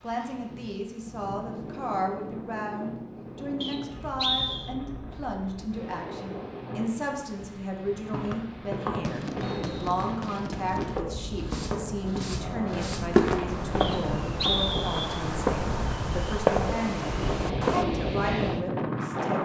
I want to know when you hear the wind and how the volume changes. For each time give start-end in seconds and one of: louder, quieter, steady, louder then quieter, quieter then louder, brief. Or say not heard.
0.0-19.4 louder.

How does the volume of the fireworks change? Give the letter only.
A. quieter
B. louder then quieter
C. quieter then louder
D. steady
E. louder
C.